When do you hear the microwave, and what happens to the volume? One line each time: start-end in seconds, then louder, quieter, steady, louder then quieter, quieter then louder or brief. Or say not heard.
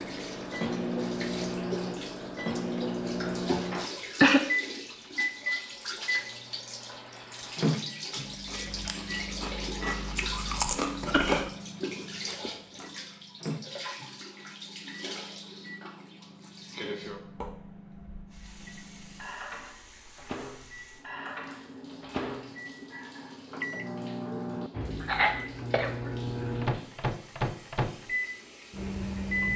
0.0-29.5 quieter then louder.